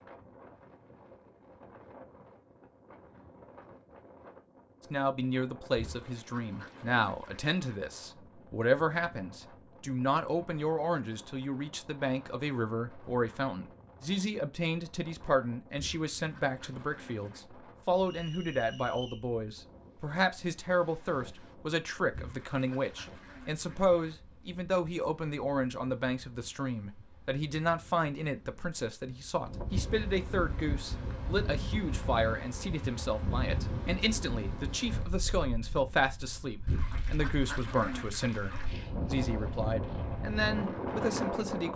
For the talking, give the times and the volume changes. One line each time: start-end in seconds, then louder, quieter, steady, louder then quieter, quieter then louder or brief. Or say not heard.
4.9-41.7 steady.